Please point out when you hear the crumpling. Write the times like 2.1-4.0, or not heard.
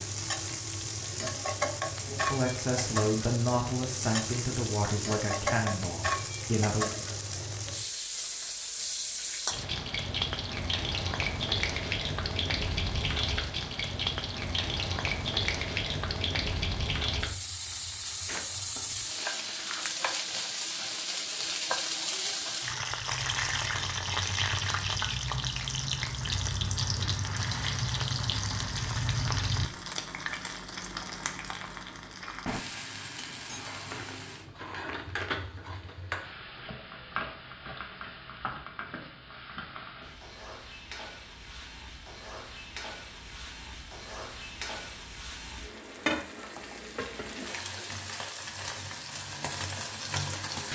17.6-20.0, 33.9-35.4.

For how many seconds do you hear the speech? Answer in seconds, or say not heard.
5 s.